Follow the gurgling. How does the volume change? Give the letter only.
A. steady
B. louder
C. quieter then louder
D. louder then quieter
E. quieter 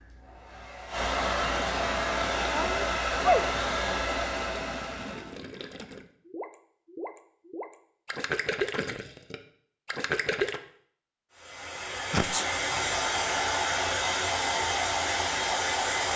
B.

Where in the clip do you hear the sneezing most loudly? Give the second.
3 s.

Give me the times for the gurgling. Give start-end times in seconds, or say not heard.
1.2-10.6.